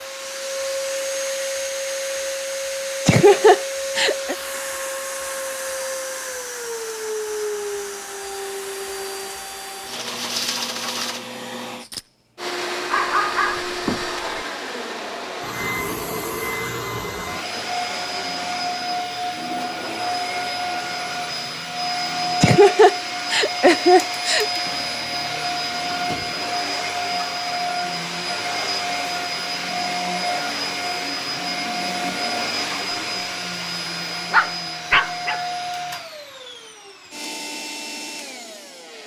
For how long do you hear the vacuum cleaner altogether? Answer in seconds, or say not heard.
39 s.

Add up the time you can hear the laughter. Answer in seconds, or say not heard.
3 s.